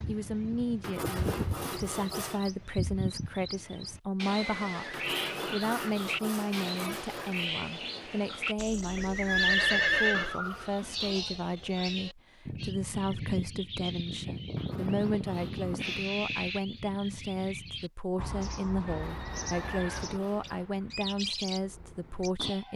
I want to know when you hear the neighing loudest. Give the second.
10 s.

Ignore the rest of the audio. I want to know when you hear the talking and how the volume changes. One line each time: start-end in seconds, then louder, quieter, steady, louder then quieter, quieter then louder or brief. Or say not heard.
0.1-22.7 steady.